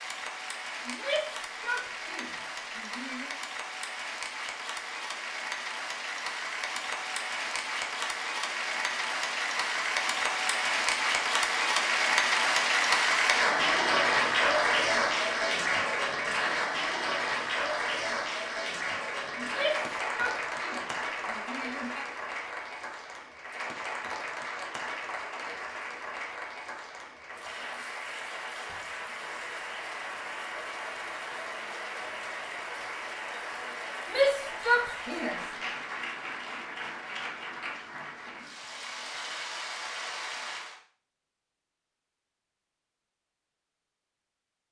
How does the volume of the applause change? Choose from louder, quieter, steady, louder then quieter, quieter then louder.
louder then quieter.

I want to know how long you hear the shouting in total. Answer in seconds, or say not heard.
7 s.